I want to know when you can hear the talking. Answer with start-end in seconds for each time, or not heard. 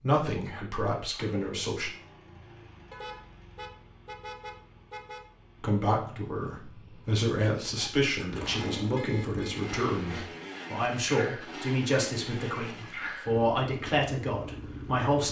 0.0-1.9, 5.6-15.2.